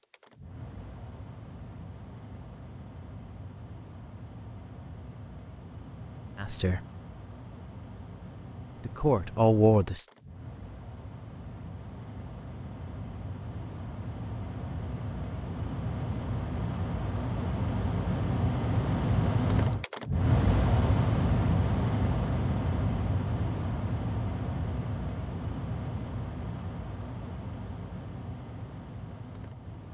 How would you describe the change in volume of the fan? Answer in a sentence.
The loudness of the fan goes up, then down.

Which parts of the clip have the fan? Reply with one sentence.
You can hear the fan from 0.0 to 29.8 s.